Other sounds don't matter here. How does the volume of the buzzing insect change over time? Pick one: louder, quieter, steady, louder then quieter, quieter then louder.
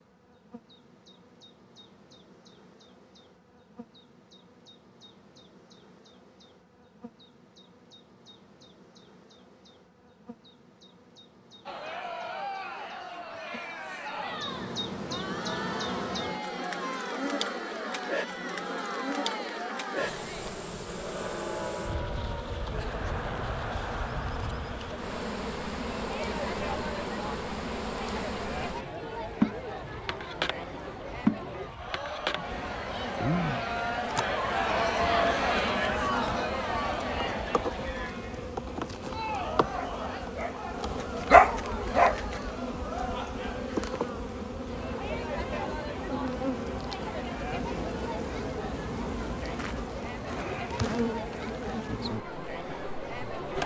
louder.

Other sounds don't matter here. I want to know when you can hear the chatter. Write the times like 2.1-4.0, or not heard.
11.7-53.6.